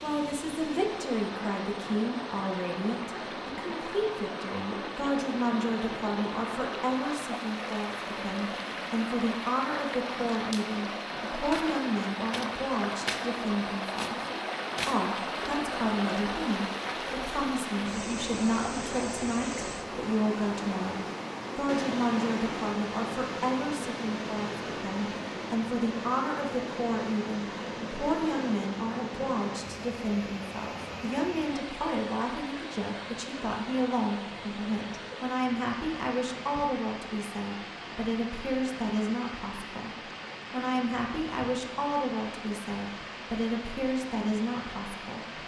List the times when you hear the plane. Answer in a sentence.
You can't hear the plane here.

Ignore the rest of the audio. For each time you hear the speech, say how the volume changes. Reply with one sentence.
The speech can be heard from 0.0 to 14.2 s, at a steady volume; and from 14.8 to 45.4 s, at a steady volume.